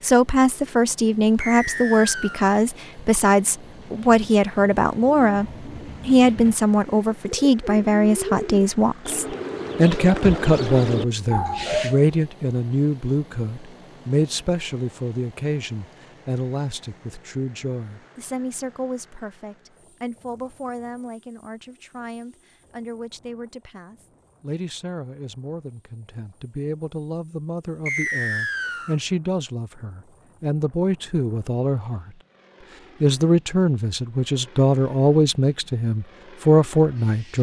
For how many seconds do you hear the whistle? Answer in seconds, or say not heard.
2 s.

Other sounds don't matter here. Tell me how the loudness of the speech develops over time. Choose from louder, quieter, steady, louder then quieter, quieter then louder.
quieter then louder.